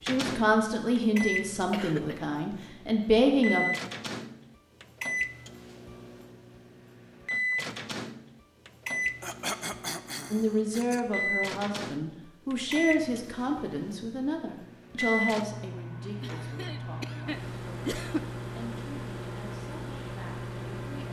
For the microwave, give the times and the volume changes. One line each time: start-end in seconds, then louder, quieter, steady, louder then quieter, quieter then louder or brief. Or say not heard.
0.0-21.0 steady.